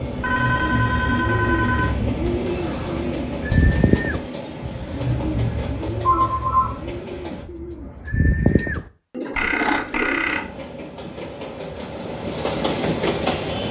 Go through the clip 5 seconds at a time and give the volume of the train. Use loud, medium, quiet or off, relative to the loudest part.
loud, medium, loud.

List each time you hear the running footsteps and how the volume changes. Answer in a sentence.
The running footsteps can't be heard in this clip.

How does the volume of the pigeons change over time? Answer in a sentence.
The loudness of the pigeons goes down, then up.